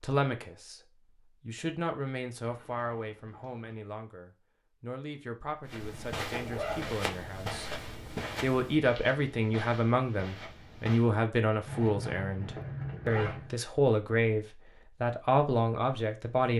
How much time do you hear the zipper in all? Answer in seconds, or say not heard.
4 s.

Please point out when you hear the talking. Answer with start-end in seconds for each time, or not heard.
0.0-0.8, 1.4-7.8, 8.4-16.5.